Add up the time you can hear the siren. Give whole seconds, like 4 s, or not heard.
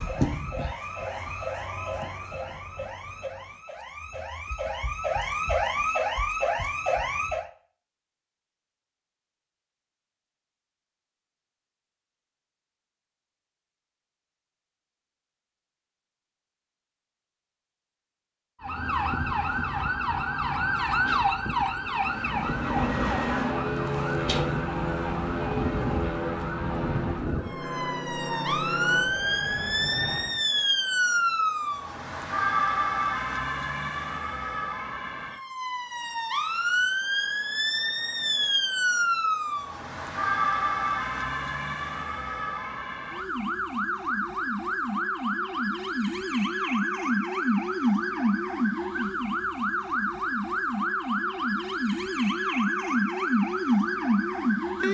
44 s.